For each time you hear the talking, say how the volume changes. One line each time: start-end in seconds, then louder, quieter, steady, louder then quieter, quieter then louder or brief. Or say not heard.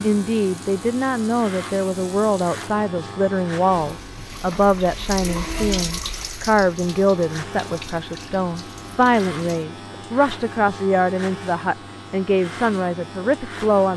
0.0-13.9 steady.